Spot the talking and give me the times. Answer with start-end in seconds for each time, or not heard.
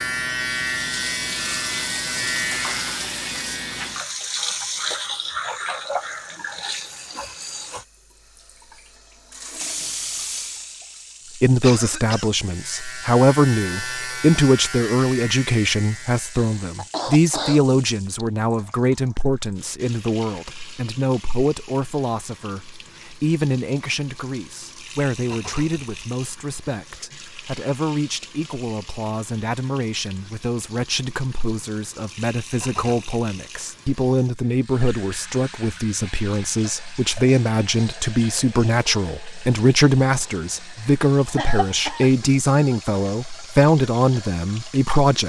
11.3-45.2.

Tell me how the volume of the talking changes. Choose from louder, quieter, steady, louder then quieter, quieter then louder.
quieter then louder.